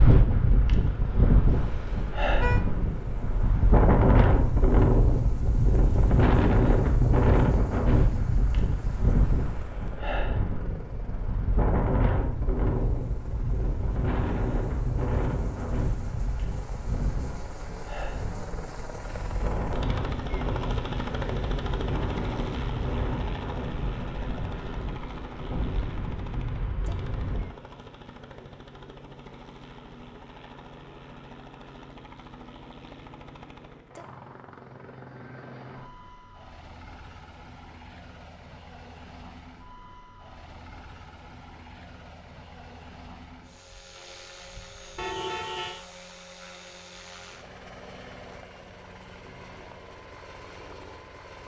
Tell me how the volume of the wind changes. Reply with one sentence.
The volume of the wind goes down.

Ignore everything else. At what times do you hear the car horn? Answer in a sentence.
The car horn can be heard from 1.5 to 2.6 s and from 45.0 to 45.9 s.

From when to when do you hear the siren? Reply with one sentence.
The siren can't be heard in this clip.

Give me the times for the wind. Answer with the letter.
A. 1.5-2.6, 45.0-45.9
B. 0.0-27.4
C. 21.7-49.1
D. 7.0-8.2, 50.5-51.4
B.